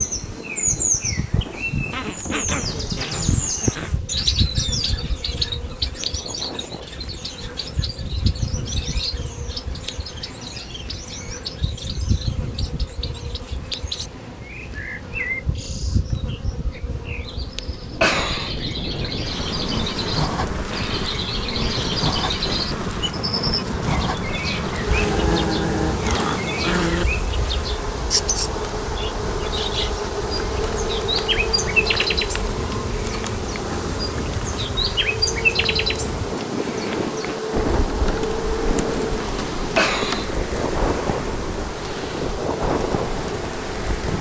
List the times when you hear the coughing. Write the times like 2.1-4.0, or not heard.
17.6-18.6, 39.5-40.3.